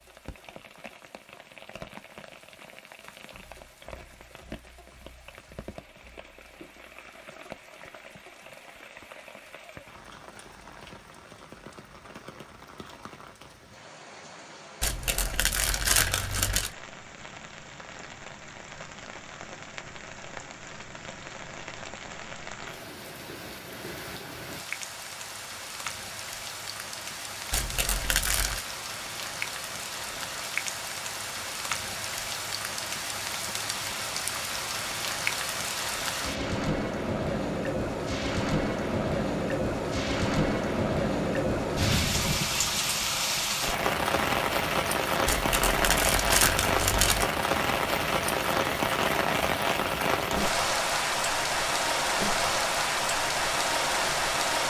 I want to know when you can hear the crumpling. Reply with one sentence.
You can hear the crumpling from 14.8 to 16.7 s, from 27.5 to 28.6 s and from 45.2 to 47.3 s.